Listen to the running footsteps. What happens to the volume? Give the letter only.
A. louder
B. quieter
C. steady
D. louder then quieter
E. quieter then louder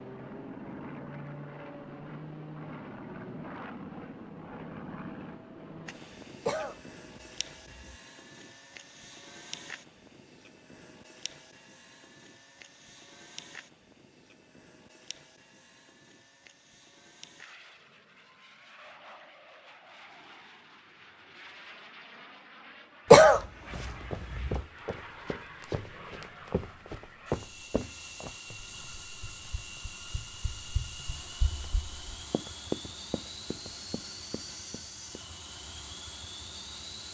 E.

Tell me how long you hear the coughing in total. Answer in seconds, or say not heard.
3 s.